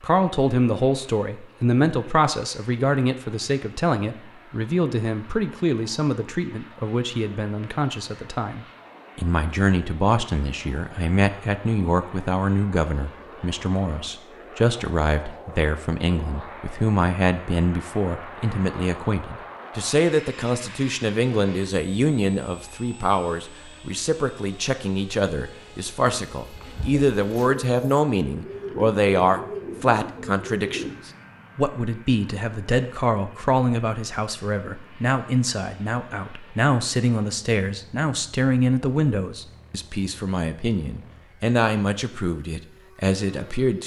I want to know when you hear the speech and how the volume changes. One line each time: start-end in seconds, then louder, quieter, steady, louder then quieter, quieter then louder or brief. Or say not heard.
0.0-43.8 steady.